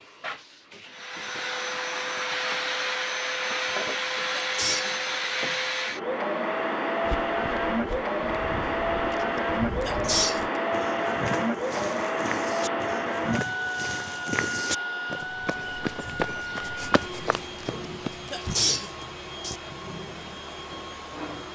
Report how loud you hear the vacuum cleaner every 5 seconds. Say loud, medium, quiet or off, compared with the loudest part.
loud, loud, loud, medium, medium.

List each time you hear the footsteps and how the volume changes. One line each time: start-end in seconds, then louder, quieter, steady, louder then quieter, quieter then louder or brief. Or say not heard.
7.0-18.6 louder.